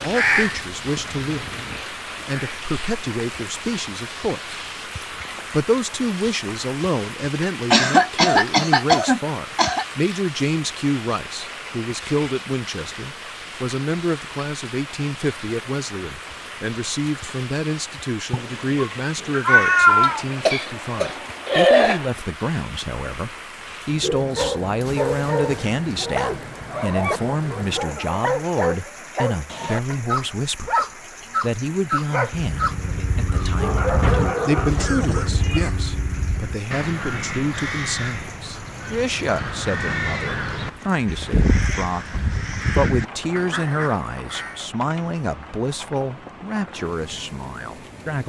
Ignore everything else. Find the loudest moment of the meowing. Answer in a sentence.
The volume of the meowing peaks at 20 seconds.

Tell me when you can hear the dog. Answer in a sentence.
You can hear the dog from 24.0 to 34.9 s.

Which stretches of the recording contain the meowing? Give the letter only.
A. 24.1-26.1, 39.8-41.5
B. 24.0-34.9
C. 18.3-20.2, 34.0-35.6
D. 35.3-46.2
C.